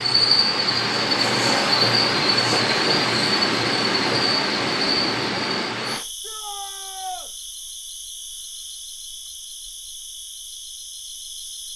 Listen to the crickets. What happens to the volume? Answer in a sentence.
The volume of the crickets goes down.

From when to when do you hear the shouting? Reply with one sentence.
The shouting can be heard from 6.2 to 7.3 s.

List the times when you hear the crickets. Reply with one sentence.
You can hear the crickets from 0.0 to 11.7 s.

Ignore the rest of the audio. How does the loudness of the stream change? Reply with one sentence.
The loudness of the stream stays about the same.